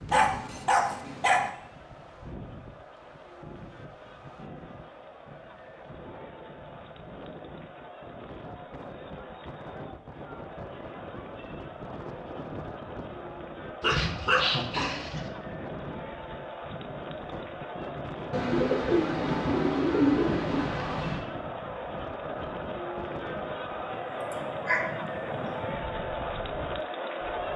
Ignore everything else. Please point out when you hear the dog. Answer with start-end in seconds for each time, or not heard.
0.1-1.5, 13.8-15.3, 24.1-25.6.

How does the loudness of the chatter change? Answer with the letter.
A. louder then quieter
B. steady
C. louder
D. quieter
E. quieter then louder
C.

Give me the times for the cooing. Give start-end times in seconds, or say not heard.
18.3-21.2.